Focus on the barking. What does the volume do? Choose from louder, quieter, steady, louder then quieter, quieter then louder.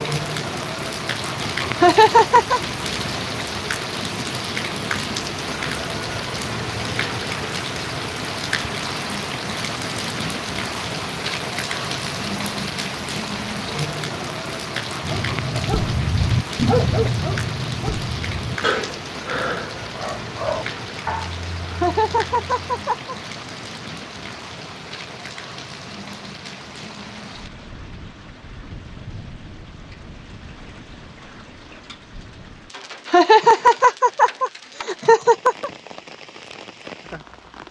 quieter.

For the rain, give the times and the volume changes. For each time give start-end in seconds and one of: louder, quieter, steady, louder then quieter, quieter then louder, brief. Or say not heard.
0.0-37.6 quieter.